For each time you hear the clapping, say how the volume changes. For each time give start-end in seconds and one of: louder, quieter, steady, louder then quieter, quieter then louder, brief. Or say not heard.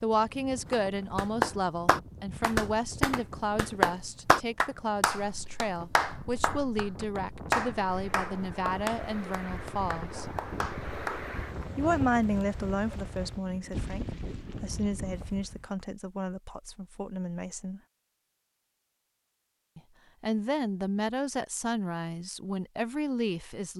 0.7-11.3 quieter.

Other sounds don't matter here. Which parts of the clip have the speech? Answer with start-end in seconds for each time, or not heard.
0.0-10.2, 11.8-17.8, 19.8-23.7.